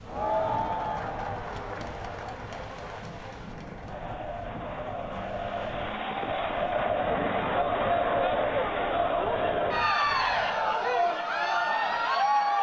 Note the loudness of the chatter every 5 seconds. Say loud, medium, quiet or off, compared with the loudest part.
medium, loud, loud.